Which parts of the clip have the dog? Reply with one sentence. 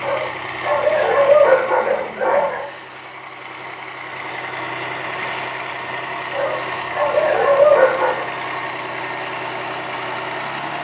The dog can be heard from 0.0 to 2.6 s and from 6.3 to 8.2 s.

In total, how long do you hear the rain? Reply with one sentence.
The rain can't be heard in this clip.